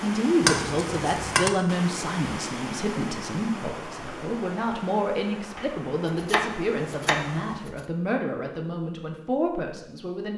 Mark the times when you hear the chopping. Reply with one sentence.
You can hear the chopping from 0.4 to 1.5 s and from 5.5 to 7.8 s.